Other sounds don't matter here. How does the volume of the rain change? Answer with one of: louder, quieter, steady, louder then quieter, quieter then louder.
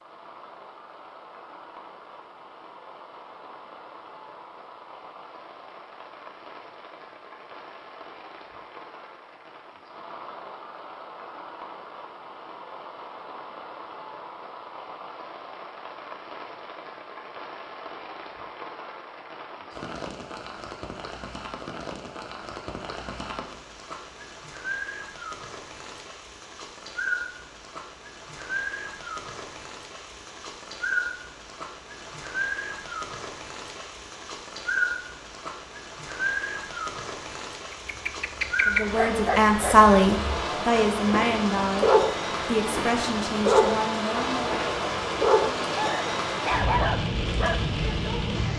louder.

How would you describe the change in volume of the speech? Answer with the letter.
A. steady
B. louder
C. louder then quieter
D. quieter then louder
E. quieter
E.